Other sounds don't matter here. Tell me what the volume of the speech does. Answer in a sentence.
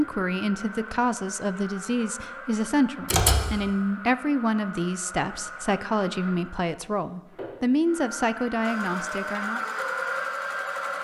The volume of the speech stays about the same.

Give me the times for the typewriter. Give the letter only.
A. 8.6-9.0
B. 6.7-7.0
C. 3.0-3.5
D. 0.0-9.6
C.